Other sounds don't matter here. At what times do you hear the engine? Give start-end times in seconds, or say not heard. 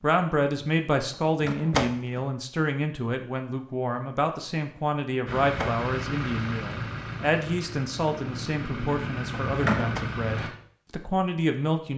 5.2-10.5.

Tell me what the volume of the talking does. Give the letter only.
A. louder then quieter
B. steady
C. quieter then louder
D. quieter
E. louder
B.